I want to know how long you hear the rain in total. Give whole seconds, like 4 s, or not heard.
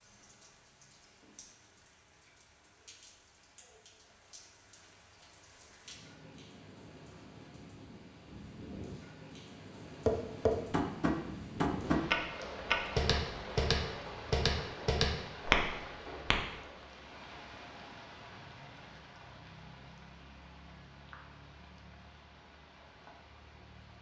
24 s.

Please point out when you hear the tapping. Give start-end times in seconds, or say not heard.
10.1-16.4.